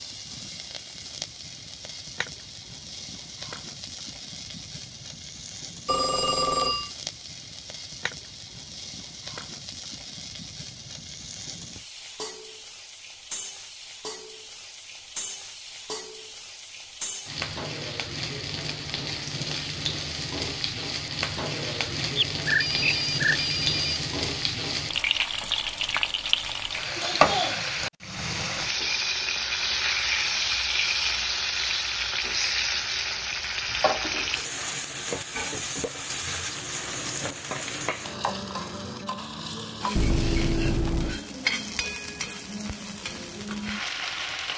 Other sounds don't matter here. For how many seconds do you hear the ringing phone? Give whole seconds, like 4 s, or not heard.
4 s.